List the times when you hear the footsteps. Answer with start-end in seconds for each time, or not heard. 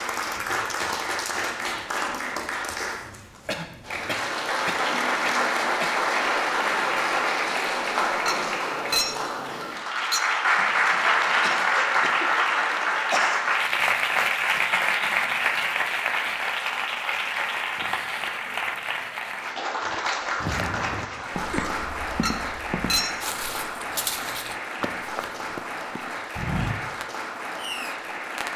19.9-26.8.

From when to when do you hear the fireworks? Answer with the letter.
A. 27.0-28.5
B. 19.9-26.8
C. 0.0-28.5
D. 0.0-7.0
A.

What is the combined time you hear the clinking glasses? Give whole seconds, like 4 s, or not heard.
3 s.